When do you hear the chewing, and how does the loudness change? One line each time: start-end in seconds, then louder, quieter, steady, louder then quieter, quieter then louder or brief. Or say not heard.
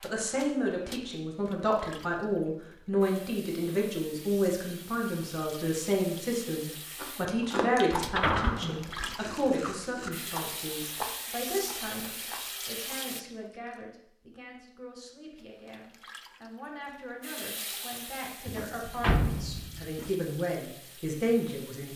7.0-13.8 quieter.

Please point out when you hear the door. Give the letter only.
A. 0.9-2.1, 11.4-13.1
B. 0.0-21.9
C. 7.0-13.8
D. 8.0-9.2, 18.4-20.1
D.